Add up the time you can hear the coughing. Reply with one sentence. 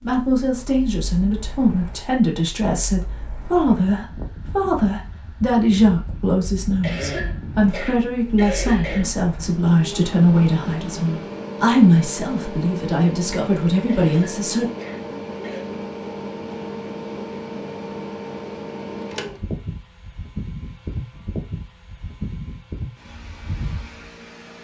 The coughing can be heard for 4 seconds in total.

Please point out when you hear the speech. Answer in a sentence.
You can hear the speech from 0.0 to 14.7 s.